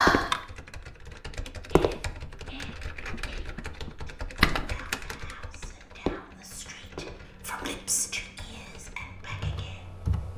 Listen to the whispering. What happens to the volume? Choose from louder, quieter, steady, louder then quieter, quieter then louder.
louder then quieter.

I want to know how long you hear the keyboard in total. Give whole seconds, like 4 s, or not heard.
10 s.